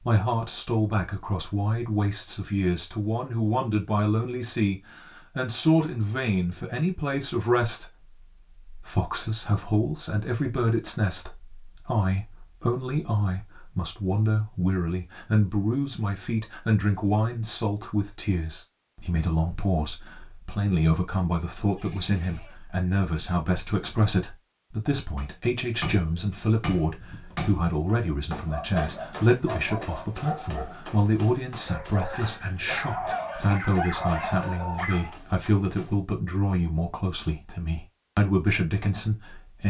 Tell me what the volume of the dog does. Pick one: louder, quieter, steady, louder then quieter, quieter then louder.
louder.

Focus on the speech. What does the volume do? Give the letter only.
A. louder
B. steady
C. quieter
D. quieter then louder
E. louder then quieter
B.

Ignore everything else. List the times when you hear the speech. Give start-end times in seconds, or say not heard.
0.0-39.6.